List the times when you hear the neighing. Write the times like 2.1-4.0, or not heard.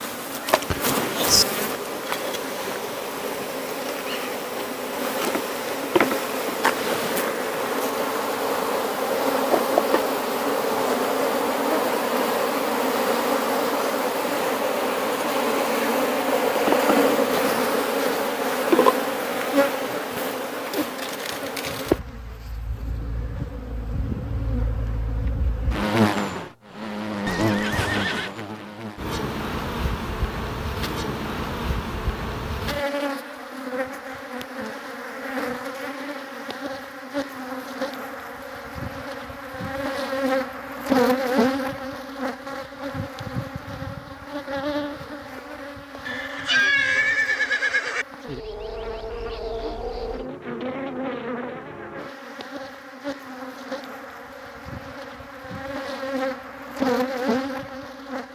0.5-1.4, 27.2-28.4, 46.0-48.0.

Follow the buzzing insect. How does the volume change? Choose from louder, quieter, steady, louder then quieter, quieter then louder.
quieter.